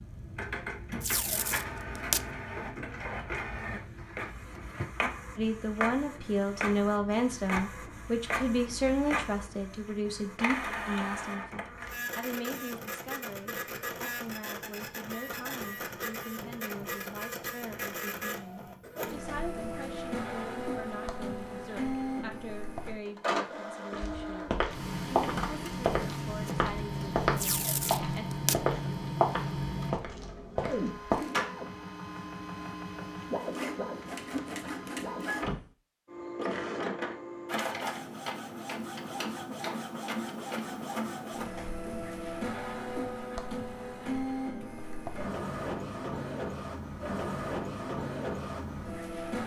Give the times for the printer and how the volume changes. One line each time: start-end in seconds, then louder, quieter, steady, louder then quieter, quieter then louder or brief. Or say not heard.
0.0-49.4 steady.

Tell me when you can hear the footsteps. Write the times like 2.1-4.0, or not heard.
23.9-31.2.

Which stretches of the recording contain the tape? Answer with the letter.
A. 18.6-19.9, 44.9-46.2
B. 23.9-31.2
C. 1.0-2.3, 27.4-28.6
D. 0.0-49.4
C.